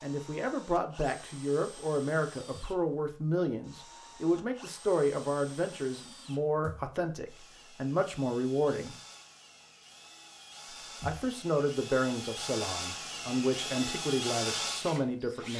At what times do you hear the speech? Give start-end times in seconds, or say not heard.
0.0-8.9, 11.0-15.5.